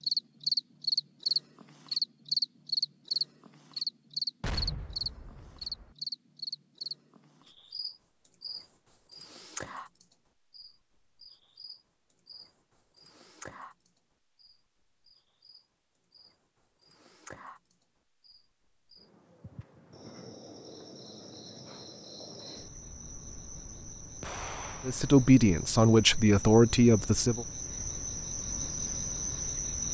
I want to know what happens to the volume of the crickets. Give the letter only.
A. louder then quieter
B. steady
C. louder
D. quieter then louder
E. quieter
D.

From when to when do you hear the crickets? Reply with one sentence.
The crickets can be heard from 0.0 to 29.8 s.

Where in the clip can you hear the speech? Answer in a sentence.
You can hear the speech from 24.9 to 27.4 s.